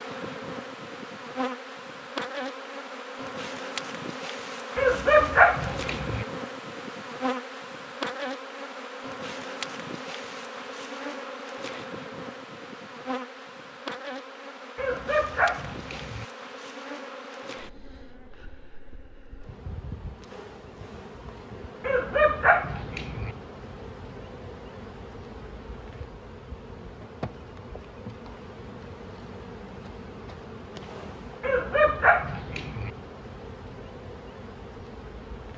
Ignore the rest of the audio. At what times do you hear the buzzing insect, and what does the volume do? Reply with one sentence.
The buzzing insect can be heard from 0.0 to 35.5 s, getting quieter.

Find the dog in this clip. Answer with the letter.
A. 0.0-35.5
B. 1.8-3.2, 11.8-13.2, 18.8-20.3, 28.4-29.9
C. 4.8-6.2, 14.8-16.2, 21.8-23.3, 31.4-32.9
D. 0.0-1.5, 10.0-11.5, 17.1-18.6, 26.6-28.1
C.